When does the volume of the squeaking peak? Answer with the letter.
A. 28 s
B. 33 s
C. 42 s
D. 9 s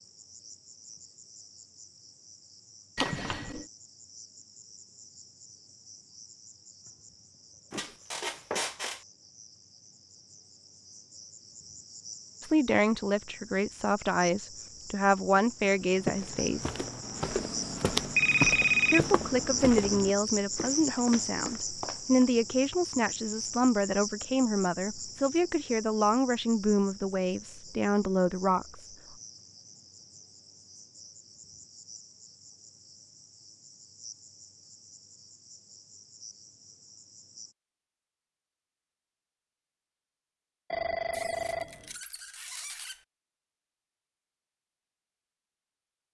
D.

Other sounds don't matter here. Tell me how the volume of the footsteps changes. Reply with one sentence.
The loudness of the footsteps goes up, then down.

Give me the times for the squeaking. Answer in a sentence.
The squeaking can be heard from 7.7 to 9.1 s and from 41.1 to 43.0 s.